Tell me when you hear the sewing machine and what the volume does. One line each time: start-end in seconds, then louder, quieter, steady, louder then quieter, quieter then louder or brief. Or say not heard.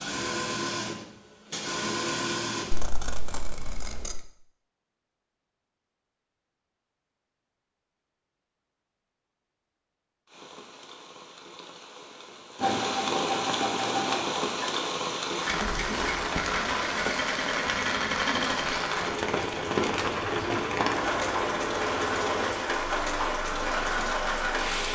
0.0-2.9 brief
12.6-24.9 steady.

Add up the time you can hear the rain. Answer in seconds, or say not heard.
15 s.